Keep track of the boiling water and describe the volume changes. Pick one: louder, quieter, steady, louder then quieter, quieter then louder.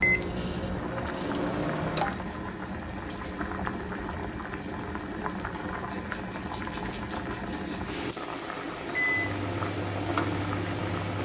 steady.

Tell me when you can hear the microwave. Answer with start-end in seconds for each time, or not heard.
0.0-2.2, 8.9-11.2.